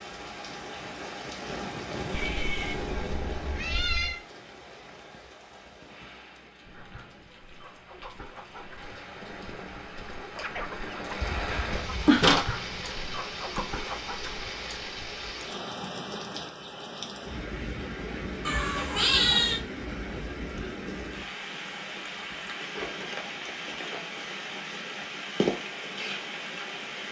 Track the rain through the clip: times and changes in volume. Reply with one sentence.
The rain can be heard from 0.0 to 27.0 s, getting quieter then louder.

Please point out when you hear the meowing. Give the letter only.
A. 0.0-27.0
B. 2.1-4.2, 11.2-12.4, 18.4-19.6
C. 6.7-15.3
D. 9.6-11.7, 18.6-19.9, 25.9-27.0
B.